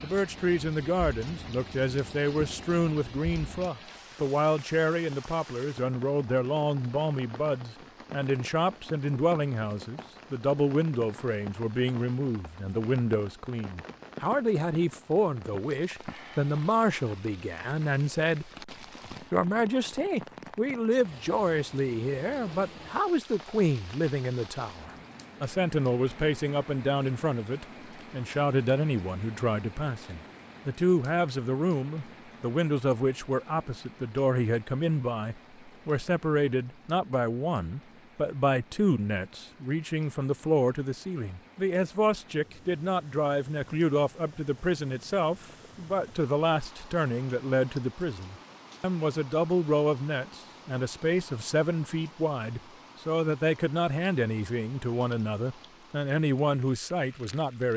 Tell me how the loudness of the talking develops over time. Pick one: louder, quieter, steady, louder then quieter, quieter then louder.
steady.